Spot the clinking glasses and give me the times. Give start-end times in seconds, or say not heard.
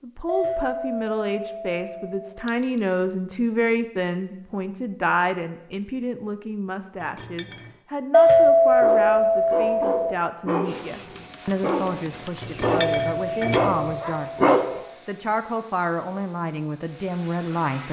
2.5-3.0, 7.0-7.8, 12.4-14.0.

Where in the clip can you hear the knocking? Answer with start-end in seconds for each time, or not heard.
not heard.